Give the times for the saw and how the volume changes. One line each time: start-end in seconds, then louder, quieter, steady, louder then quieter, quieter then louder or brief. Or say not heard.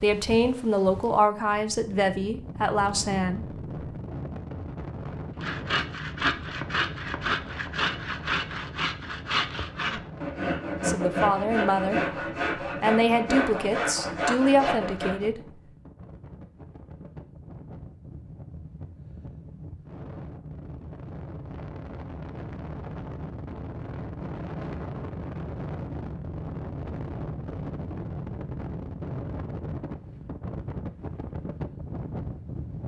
5.3-15.3 steady.